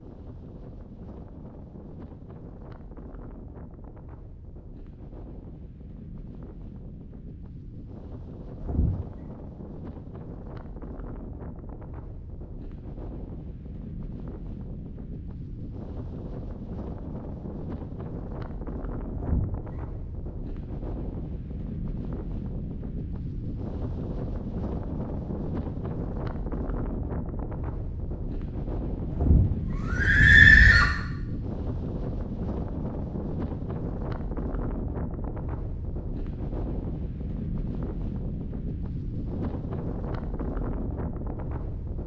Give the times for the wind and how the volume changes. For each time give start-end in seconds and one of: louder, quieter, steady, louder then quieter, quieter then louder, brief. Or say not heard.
0.0-42.0 louder.